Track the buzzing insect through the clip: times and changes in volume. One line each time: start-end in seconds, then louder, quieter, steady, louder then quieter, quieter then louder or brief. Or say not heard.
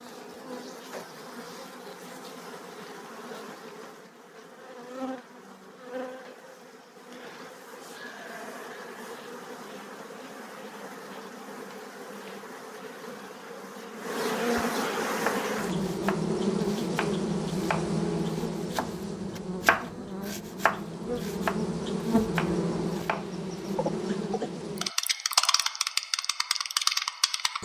0.0-27.6 louder.